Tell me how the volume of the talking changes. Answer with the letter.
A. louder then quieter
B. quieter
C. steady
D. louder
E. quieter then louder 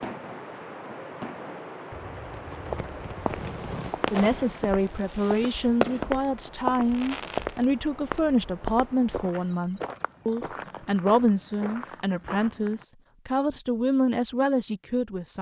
C.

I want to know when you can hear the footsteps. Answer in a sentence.
You can hear the footsteps from 2.7 to 12.8 s.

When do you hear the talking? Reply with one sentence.
The talking can be heard from 4.1 to 15.3 s.